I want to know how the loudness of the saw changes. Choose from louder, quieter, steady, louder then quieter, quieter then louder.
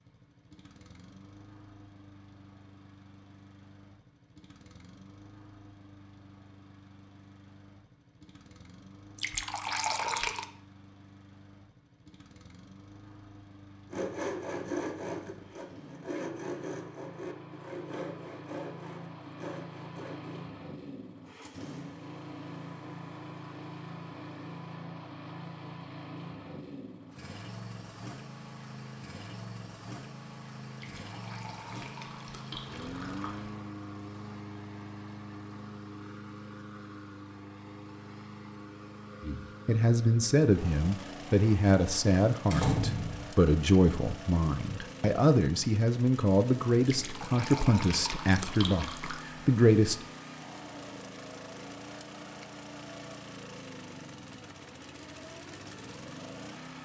quieter.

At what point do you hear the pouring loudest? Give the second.
10 s.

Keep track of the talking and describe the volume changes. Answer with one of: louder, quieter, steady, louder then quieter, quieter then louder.
steady.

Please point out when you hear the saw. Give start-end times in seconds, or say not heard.
13.9-20.4.